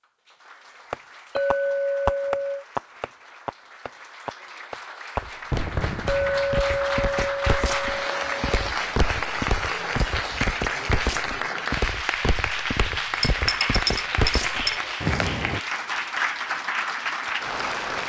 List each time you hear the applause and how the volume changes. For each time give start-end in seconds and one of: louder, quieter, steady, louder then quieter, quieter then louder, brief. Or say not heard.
0.0-18.0 louder.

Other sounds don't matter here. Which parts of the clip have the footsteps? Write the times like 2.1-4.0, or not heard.
5.2-15.6.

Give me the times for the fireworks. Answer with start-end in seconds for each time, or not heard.
0.9-7.3.